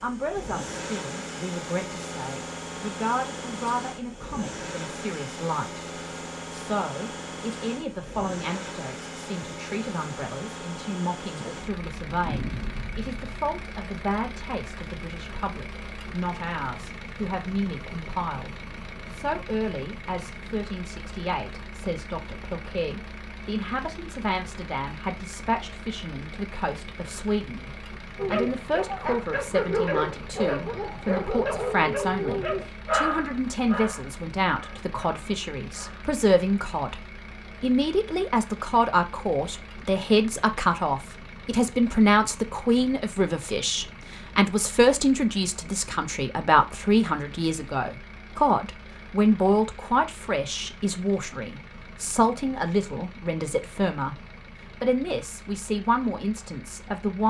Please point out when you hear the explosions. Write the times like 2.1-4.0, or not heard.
12.2-13.5.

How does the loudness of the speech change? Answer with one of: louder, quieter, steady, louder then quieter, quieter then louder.
louder.